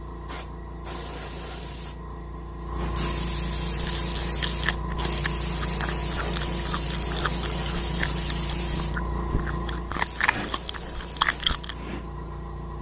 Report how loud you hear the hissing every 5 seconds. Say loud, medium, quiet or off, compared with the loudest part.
loud, loud, medium.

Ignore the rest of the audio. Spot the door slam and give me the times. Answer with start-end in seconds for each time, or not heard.
not heard.